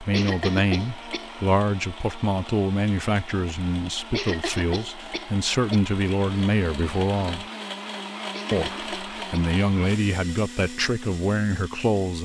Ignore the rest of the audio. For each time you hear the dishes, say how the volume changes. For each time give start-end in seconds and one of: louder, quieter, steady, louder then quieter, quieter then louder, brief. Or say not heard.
not heard.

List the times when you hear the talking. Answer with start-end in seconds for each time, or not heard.
0.0-7.5, 8.5-12.2.